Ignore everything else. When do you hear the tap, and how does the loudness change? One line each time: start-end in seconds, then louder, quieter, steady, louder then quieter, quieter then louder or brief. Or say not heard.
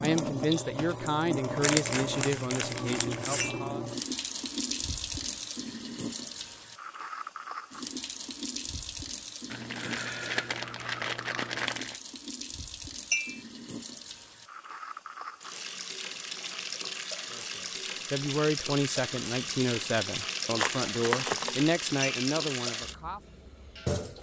0.0-24.1 quieter then louder.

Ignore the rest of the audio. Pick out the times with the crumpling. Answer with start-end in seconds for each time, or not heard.
1.6-3.5, 9.5-12.0, 20.6-21.7.